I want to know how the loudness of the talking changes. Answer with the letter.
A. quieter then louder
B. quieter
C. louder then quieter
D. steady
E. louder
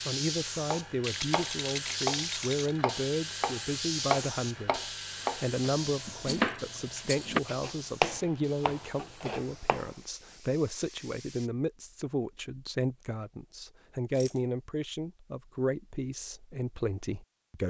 D.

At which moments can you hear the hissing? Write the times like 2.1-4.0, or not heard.
0.0-11.5.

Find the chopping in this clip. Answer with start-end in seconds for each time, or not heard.
0.7-9.9.